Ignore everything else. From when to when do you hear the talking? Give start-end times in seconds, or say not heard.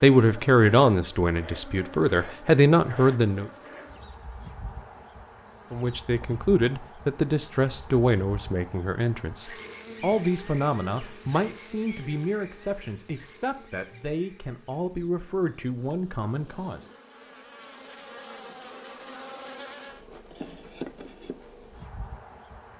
0.0-3.5, 5.7-16.8.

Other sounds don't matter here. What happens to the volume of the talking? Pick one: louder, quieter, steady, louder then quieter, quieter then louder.
quieter.